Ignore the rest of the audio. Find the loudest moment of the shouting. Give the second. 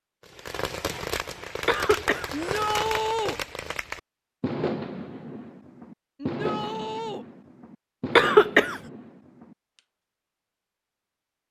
3 s.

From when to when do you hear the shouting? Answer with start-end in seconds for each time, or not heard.
2.3-3.4, 6.2-7.2.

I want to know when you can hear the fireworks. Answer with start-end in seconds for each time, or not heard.
0.2-9.8.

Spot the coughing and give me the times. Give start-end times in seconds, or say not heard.
1.6-2.7, 8.2-8.8.